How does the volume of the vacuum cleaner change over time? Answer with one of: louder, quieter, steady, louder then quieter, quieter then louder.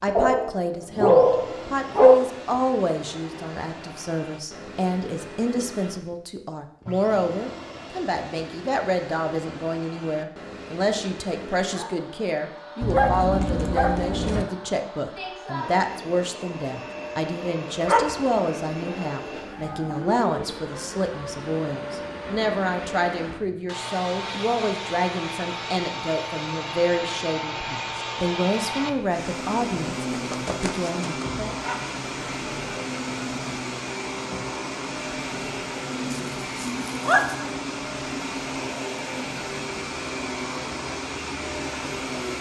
louder.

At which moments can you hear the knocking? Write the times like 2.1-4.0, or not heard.
not heard.